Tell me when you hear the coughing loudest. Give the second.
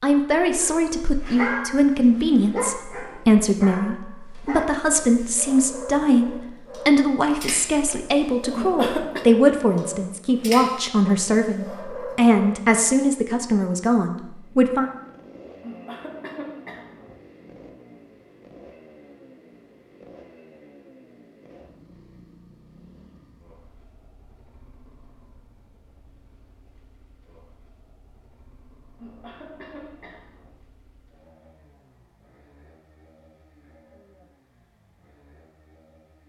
9 s.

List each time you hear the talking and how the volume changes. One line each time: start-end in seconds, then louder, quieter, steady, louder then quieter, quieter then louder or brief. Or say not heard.
0.0-14.9 steady.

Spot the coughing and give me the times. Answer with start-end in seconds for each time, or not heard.
8.5-9.3, 15.6-17.1, 28.9-30.5.